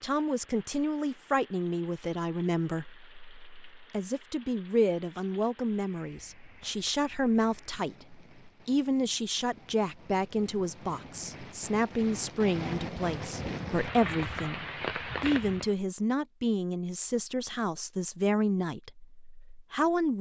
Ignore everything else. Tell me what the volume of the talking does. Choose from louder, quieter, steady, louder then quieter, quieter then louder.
steady.